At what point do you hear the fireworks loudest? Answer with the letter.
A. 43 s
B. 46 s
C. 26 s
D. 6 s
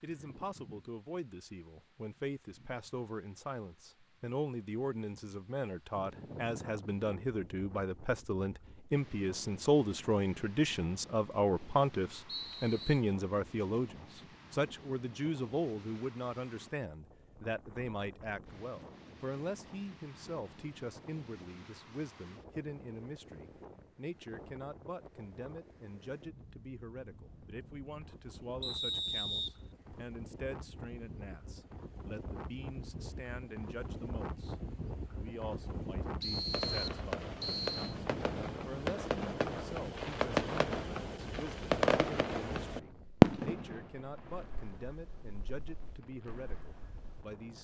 A.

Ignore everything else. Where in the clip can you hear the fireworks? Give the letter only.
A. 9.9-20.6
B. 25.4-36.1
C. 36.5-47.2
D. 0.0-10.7
C.